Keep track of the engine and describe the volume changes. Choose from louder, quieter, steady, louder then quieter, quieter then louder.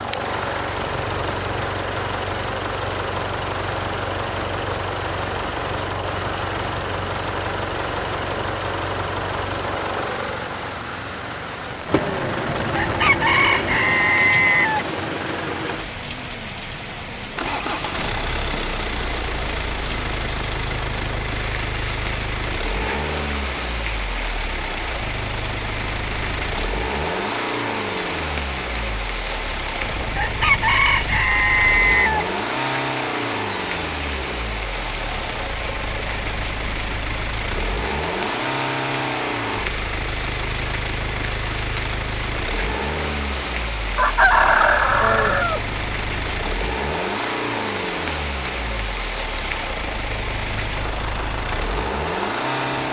steady.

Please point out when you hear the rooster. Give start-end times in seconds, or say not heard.
12.6-14.8, 29.9-32.3, 44.0-45.6.